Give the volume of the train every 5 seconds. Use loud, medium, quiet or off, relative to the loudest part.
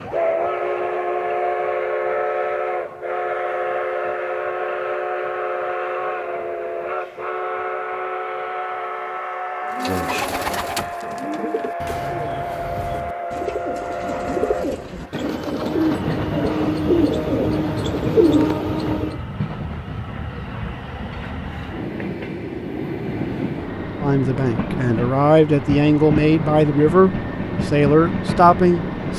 loud, loud, medium, medium, medium, loud.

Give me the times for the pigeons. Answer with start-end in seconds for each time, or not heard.
9.7-19.2.